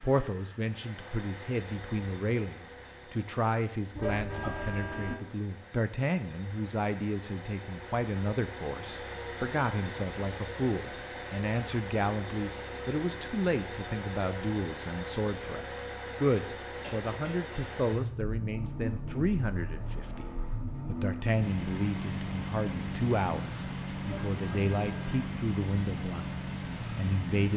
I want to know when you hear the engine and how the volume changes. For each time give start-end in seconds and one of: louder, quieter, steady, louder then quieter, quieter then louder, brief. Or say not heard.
0.0-27.5 louder.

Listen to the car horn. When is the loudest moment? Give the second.
4 s.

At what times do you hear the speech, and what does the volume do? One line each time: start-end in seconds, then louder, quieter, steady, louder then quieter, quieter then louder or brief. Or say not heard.
0.0-20.2 steady
20.9-27.5 quieter.